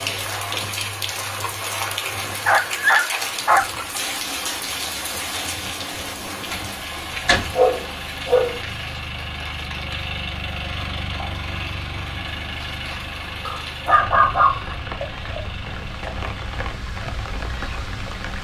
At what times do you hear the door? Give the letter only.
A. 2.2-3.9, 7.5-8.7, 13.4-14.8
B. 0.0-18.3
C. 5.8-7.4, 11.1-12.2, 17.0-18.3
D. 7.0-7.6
D.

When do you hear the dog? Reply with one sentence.
You can hear the dog from 2.2 to 3.9 s, from 7.5 to 8.7 s and from 13.4 to 14.8 s.